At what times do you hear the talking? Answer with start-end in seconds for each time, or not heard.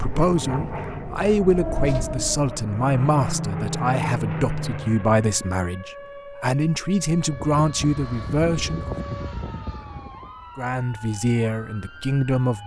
0.0-8.9, 10.6-12.6.